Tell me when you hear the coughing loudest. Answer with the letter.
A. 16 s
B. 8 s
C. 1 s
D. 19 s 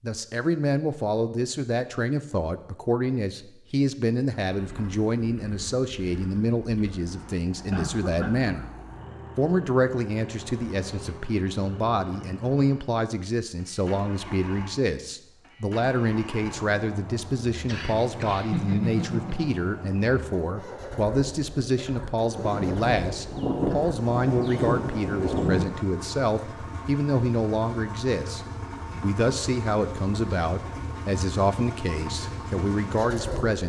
D.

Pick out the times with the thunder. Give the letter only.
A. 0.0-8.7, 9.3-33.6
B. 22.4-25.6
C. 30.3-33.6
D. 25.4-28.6
B.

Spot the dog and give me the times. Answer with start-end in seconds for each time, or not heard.
not heard.